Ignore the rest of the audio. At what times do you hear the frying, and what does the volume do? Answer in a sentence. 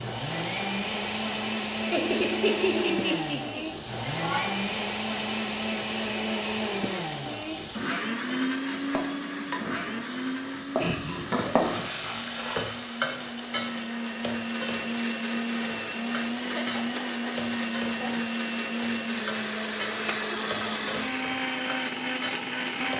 You can hear the frying from 0.0 to 22.9 s, getting louder then quieter.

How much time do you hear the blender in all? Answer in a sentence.
You can hear the blender for 23 seconds altogether.